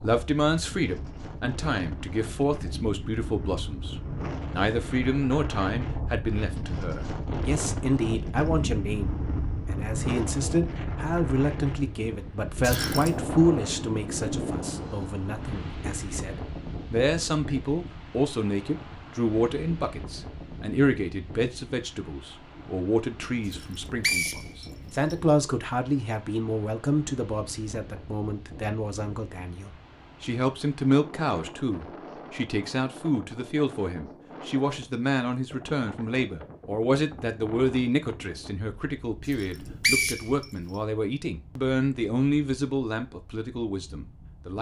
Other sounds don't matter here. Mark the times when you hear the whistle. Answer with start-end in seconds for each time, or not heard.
12.6-13.2, 23.5-25.1, 39.3-40.5.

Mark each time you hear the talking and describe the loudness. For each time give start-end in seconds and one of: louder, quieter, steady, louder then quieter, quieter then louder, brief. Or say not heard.
0.0-44.5 steady.